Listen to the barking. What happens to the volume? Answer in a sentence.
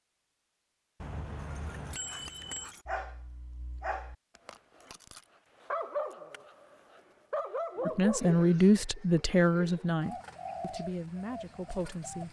The loudness of the barking goes down, then up.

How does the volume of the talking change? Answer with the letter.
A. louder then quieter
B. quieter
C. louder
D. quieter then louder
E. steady
B.